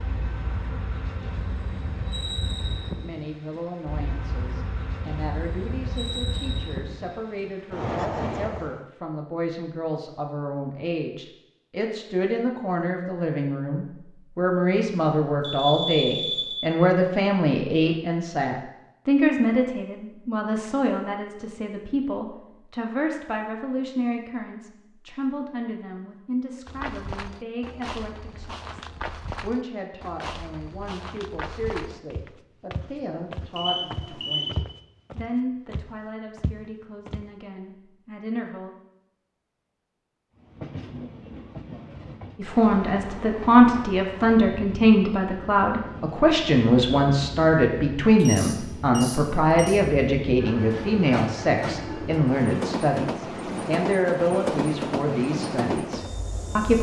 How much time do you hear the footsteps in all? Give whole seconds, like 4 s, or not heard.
11 s.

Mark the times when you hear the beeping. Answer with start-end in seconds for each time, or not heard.
15.4-16.6, 33.5-34.5, 48.1-49.8.